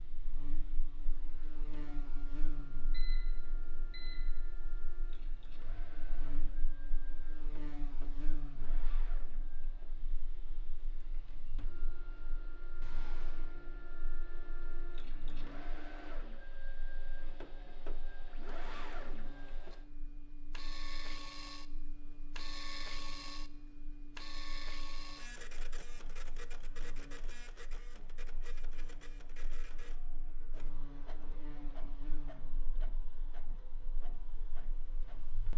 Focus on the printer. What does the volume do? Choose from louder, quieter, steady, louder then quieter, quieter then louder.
louder then quieter.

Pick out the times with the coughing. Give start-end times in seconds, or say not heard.
not heard.